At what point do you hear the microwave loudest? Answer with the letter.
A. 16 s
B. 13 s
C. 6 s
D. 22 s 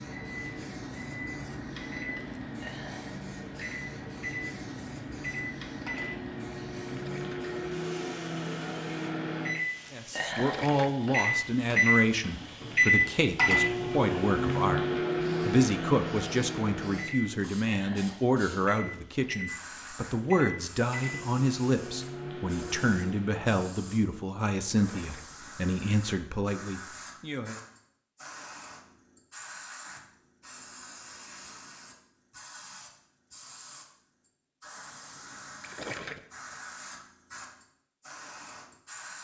B.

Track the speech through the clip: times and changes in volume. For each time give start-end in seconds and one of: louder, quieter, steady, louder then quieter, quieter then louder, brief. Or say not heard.
9.9-27.6 steady.